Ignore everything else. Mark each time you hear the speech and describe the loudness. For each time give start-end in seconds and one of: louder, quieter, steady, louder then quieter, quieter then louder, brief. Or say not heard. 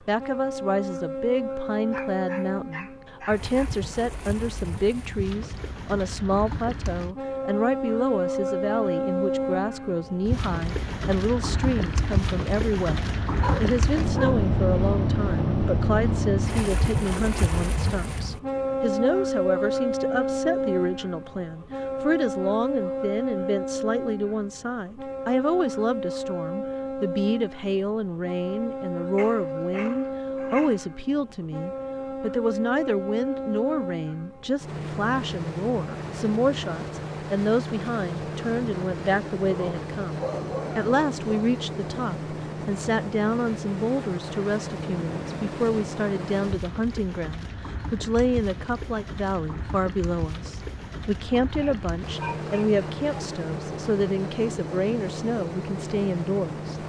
0.1-56.8 steady.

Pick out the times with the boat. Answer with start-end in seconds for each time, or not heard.
0.0-56.8.